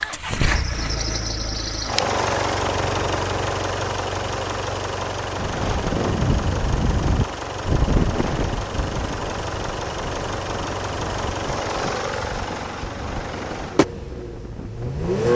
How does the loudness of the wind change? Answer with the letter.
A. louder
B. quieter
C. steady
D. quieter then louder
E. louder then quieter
B.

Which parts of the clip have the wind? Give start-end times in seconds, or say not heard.
5.3-15.1.